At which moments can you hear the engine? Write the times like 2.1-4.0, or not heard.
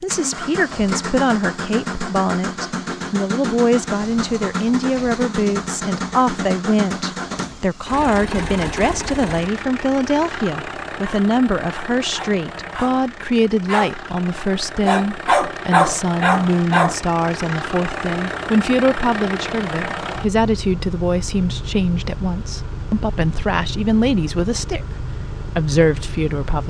0.0-26.6.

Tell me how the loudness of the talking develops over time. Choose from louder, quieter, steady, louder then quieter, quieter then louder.
steady.